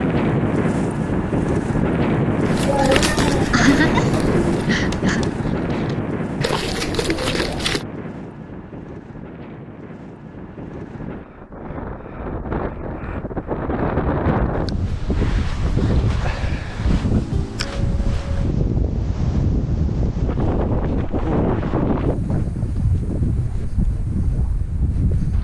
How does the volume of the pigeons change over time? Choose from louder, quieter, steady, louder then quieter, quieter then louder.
quieter then louder.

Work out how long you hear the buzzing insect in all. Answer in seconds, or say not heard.
not heard.